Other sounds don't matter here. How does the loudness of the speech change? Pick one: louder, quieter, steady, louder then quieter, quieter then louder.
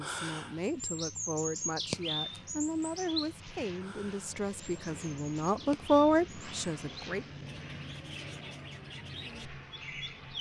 louder.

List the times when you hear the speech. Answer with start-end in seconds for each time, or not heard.
0.0-7.2.